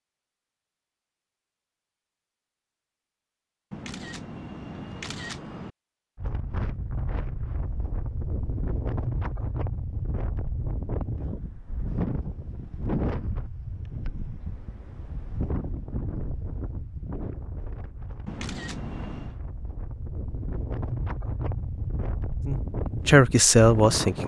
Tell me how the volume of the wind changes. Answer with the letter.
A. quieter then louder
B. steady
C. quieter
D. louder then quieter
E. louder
A.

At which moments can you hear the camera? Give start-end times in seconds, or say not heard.
3.7-5.7, 18.2-19.4.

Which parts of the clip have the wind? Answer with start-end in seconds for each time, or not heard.
6.2-24.2.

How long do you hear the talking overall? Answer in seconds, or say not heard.
2 s.